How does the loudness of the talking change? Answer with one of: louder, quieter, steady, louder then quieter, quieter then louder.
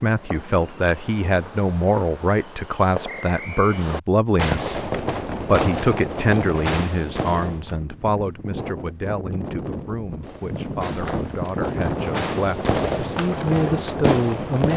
quieter then louder.